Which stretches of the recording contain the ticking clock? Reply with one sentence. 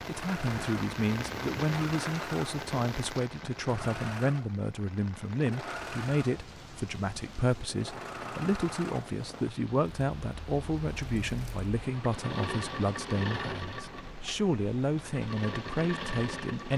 The ticking clock can't be heard in this clip.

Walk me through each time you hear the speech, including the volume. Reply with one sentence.
You can hear the speech from 0.1 to 16.7 s, at a steady volume.